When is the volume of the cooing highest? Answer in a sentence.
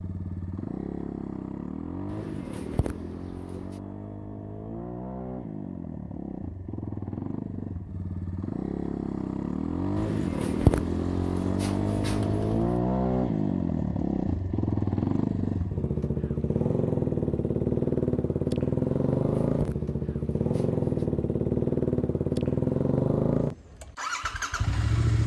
The loudest moment of the cooing is at 11 seconds.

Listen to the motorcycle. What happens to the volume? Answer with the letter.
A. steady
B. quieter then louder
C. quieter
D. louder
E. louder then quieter
D.